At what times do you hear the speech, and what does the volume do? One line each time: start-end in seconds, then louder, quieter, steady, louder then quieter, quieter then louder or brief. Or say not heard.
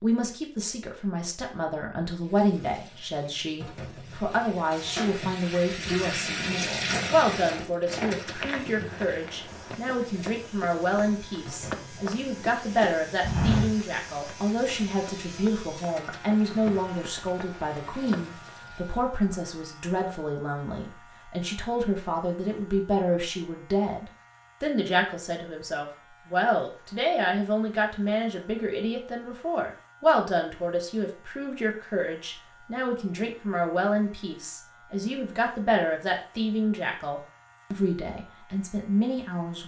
0.0-39.6 steady.